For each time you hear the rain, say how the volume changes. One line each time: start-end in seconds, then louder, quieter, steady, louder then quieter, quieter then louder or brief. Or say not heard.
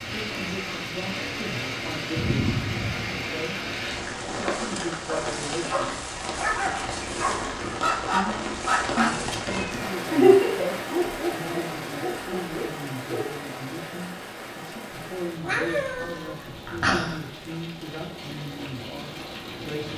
0.0-19.9 quieter.